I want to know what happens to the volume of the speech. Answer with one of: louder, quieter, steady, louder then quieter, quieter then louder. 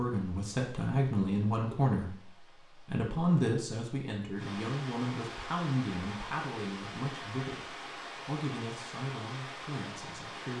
quieter.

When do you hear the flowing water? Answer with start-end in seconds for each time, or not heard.
0.0-10.5.